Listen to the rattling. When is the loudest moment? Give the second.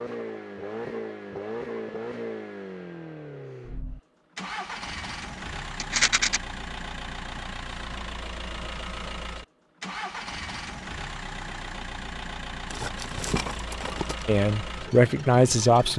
6 s.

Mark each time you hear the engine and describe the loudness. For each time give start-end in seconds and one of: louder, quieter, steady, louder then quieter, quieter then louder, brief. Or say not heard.
0.0-15.9 steady.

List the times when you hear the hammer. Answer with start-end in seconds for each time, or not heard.
not heard.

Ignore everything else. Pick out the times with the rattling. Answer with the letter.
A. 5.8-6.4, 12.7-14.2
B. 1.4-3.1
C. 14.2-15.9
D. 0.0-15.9
A.